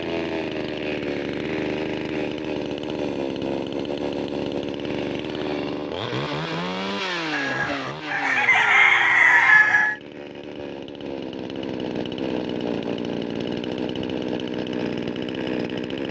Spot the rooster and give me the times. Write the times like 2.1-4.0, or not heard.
7.3-9.9.